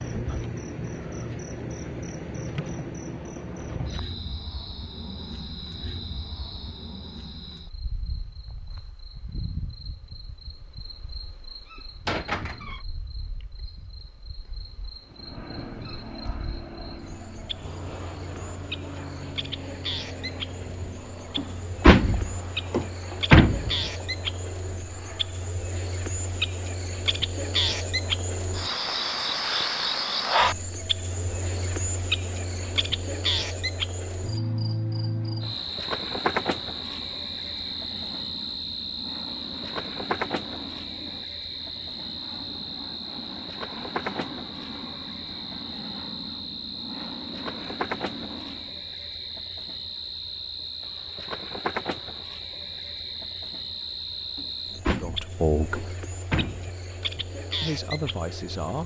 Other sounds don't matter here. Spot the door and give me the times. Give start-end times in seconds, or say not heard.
12.1-12.8, 21.4-23.7, 54.4-56.8.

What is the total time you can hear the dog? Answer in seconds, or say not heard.
not heard.